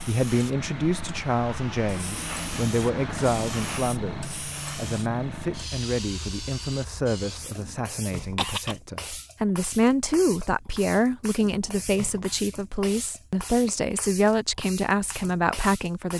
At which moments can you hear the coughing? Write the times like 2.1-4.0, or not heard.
8.2-8.8.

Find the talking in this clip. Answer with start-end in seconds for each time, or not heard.
0.1-16.1.